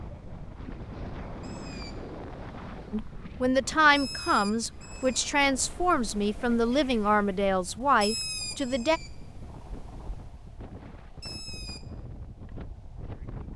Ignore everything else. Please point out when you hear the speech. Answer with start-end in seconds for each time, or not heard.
2.9-9.0.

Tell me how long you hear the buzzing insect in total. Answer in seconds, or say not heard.
not heard.